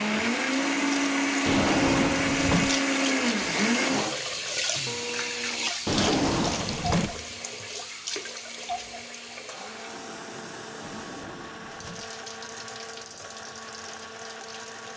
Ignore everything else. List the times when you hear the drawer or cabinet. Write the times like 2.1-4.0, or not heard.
1.4-2.8, 5.8-7.2, 10.8-12.2.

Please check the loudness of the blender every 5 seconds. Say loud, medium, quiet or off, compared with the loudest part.
loud, quiet, quiet.